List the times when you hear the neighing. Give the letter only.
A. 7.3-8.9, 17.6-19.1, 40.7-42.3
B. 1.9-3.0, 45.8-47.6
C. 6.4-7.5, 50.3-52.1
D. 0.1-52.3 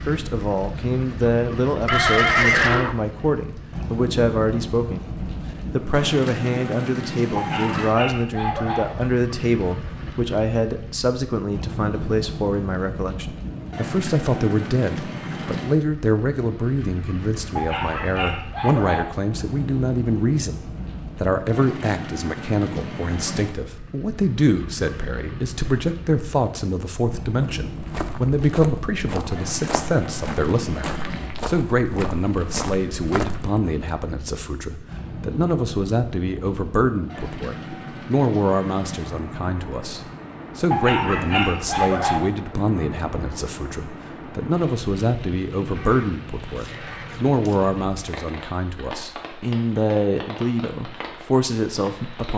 B.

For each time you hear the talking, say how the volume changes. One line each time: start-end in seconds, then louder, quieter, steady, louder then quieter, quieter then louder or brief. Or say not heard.
0.1-52.3 steady.